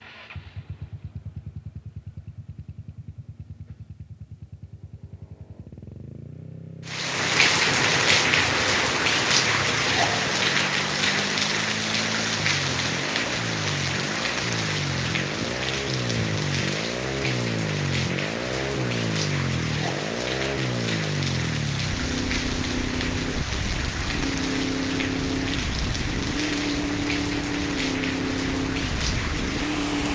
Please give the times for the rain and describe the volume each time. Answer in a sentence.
You can hear the rain from 6.8 to 30.1 s, getting quieter.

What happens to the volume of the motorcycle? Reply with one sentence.
The volume of the motorcycle goes up.